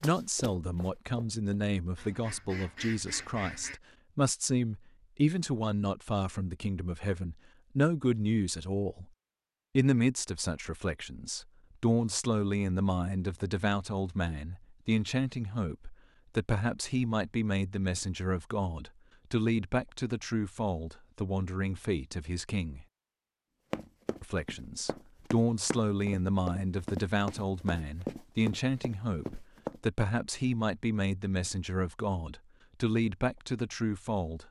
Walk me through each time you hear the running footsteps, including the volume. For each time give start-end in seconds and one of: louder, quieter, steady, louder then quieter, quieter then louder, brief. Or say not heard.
0.0-1.4 brief
23.7-29.8 louder.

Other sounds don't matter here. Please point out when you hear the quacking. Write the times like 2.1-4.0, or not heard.
1.9-3.8.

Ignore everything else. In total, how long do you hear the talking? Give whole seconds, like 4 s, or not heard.
32 s.